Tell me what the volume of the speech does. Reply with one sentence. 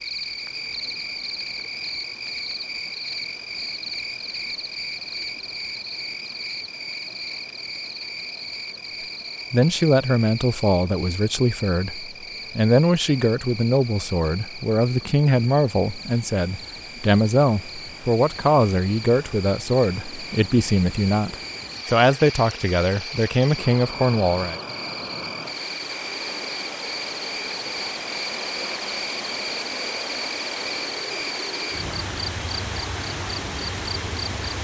The loudness of the speech stays about the same.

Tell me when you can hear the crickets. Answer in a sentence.
The crickets can be heard from 0.0 to 34.5 s.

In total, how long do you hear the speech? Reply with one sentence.
You can hear the speech for 15 seconds altogether.